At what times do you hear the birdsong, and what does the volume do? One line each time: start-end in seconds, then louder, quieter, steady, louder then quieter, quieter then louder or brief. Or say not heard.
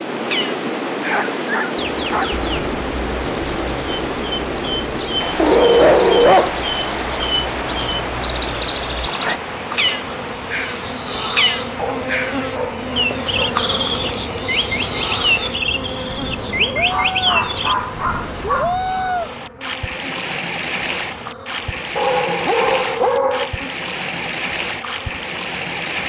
0.1-17.8 louder.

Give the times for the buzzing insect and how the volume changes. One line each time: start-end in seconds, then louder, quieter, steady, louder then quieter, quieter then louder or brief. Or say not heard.
9.2-26.0 quieter.